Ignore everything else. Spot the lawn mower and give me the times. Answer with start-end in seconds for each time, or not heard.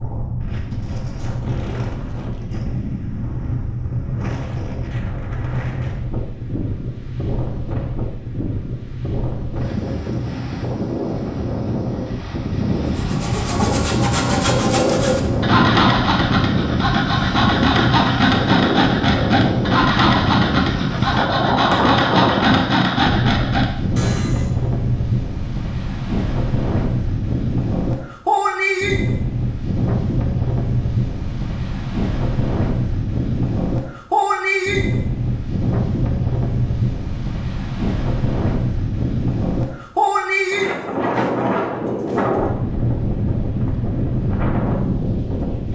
not heard.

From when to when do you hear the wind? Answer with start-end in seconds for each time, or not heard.
0.0-45.6.